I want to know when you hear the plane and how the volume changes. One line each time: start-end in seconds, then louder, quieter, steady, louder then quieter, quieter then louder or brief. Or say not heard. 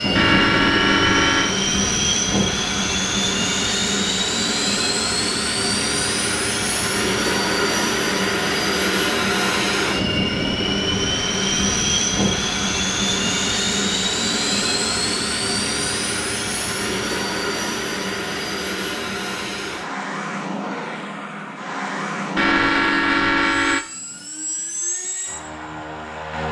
0.0-26.4 quieter.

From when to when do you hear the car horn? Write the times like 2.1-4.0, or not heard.
0.1-1.6, 22.4-23.9.